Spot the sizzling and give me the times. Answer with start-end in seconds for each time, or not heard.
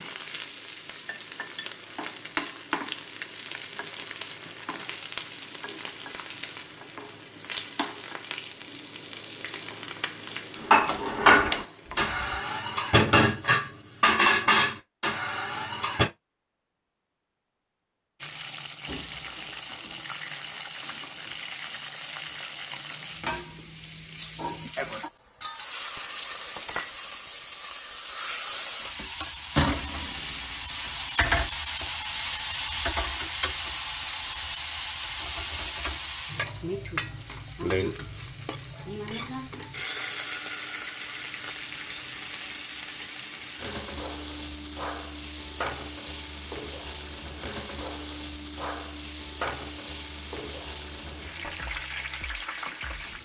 0.0-12.4, 18.2-53.2.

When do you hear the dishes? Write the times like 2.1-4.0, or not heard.
10.6-16.1.